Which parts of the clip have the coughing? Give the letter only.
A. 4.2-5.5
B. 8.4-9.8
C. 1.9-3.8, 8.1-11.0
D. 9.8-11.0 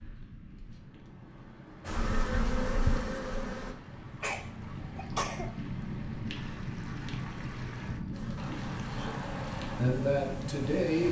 A.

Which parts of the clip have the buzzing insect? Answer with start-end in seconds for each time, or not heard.
1.9-3.8, 8.1-11.0.